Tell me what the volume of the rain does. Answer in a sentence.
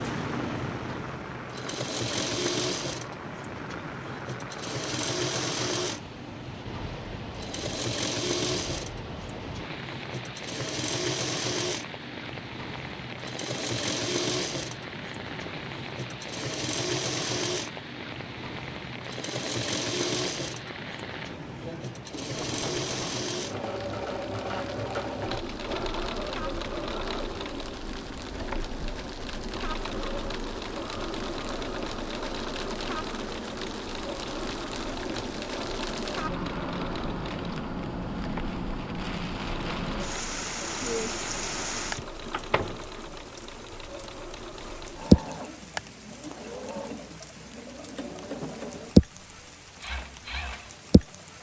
The volume of the rain goes up.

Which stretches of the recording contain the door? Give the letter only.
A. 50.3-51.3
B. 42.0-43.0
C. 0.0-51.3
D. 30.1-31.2
B.